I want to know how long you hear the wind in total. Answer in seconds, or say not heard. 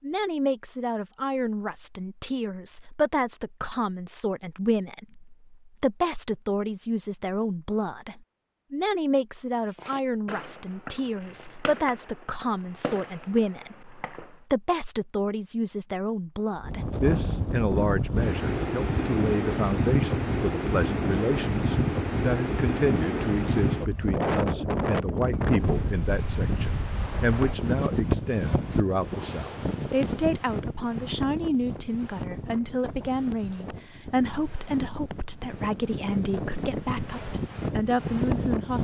22 s.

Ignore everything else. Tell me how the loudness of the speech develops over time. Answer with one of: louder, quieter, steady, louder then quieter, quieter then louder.
steady.